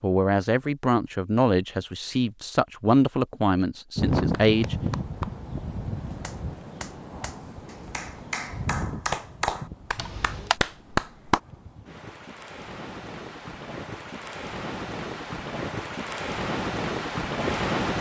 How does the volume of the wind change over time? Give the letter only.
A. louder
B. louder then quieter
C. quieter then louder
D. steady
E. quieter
C.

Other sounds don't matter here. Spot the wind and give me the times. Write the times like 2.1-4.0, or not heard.
4.0-17.9.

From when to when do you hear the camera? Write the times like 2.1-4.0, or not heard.
9.9-10.6.